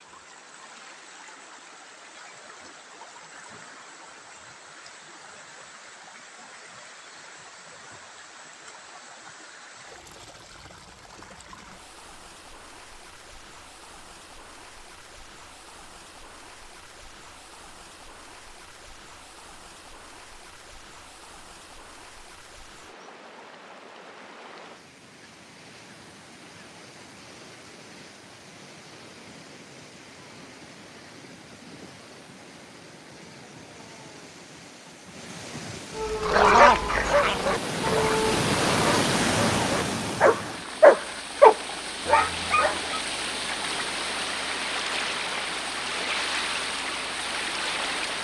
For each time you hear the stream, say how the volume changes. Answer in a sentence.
You can hear the stream from 0.0 to 48.1 s, getting louder.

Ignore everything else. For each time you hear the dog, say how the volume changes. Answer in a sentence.
You can hear the dog from 36.0 to 43.0 s, getting quieter then louder.